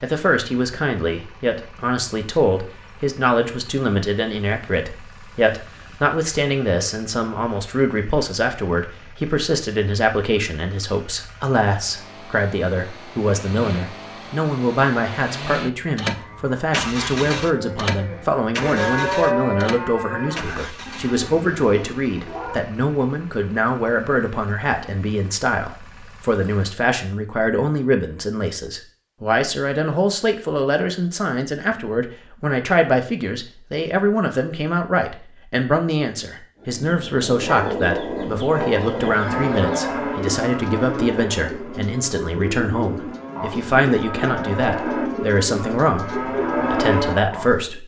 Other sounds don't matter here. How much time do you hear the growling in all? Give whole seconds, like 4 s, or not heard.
2 s.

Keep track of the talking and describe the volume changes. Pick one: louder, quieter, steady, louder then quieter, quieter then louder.
steady.